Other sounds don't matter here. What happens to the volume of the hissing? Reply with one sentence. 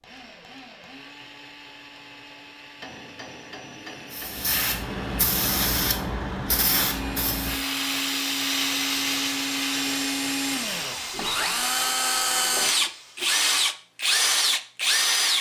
The loudness of the hissing goes down.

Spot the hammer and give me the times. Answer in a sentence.
You can hear the hammer from 2.8 to 4.5 s.